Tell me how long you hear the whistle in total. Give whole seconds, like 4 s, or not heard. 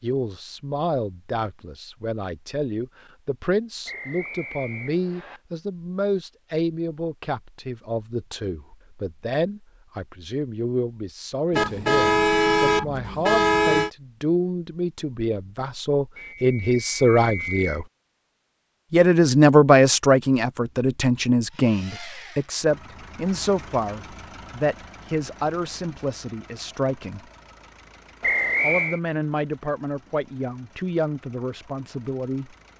4 s.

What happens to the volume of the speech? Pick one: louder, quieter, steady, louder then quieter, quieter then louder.
louder then quieter.